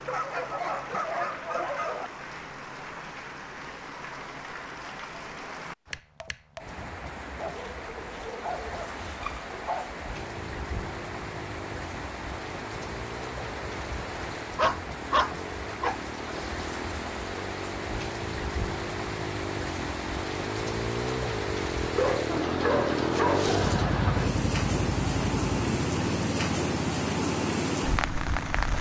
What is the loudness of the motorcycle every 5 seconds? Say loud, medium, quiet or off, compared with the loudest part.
off, off, quiet, medium, loud, loud.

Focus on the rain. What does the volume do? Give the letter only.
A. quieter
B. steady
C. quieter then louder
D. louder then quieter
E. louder
E.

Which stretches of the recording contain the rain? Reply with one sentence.
The rain can be heard from 0.0 to 28.7 s.